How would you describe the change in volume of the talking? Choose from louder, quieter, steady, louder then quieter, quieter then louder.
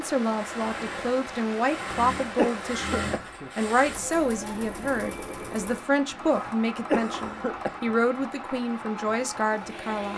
steady.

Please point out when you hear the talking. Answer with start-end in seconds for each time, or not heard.
0.0-10.1.